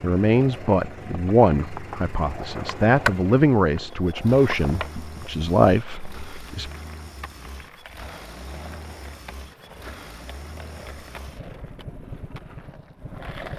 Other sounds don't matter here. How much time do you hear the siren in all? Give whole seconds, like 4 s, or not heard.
not heard.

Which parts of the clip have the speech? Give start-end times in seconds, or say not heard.
0.0-6.7.